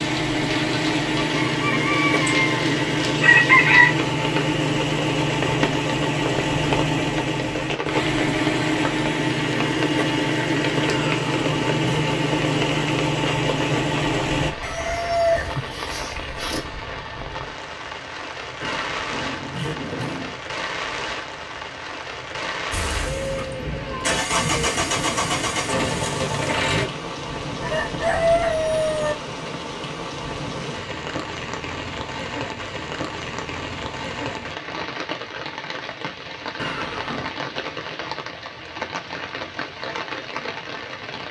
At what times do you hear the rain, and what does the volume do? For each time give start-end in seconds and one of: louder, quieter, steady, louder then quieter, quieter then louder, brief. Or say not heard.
0.0-41.2 steady.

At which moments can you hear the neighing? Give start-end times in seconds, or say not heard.
10.9-12.2, 18.6-20.4, 36.5-37.4.